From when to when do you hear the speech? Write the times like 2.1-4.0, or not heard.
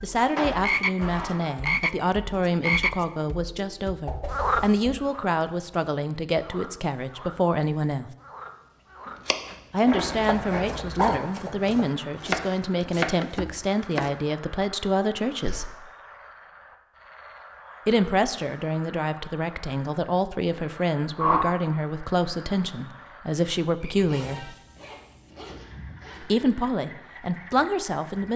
0.0-8.1, 9.7-15.7, 17.9-24.6, 26.2-28.3.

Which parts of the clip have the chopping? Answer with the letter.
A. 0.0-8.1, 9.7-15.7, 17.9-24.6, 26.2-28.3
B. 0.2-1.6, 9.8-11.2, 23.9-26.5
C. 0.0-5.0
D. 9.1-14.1
D.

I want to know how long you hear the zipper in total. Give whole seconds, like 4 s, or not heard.
5 s.